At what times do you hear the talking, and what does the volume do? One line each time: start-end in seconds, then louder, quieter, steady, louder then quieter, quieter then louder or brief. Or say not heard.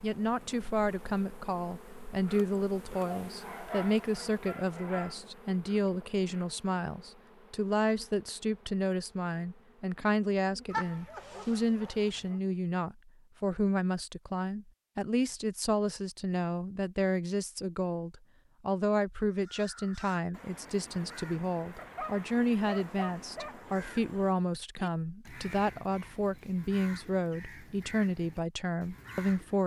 0.0-29.6 steady.